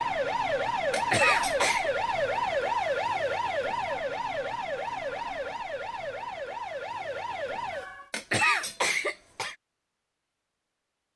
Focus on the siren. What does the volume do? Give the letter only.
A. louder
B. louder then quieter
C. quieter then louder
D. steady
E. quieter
E.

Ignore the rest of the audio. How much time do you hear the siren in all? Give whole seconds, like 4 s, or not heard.
8 s.